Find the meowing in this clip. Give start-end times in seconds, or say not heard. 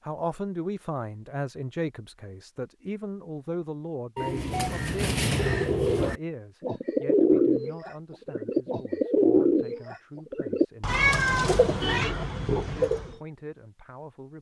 10.8-12.2.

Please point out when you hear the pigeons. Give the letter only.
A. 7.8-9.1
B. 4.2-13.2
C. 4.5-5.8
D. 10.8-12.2
B.